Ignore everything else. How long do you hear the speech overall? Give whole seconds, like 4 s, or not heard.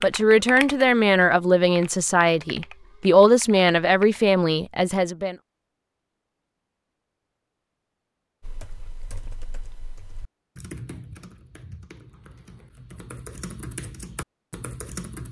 5 s.